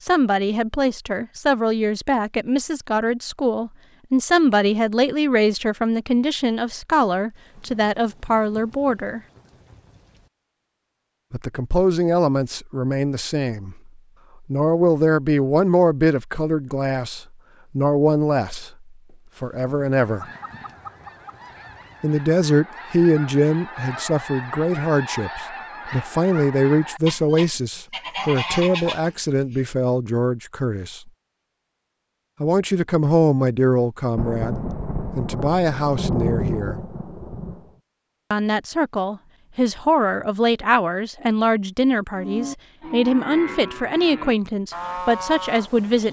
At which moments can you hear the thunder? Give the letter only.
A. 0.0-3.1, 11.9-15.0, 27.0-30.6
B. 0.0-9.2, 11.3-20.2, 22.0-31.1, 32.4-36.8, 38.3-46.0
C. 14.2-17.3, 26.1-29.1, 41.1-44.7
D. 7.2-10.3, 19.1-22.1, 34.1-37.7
D.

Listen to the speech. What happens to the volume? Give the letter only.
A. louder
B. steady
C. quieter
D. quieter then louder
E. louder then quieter
B.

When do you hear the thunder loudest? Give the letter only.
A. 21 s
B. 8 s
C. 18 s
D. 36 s
D.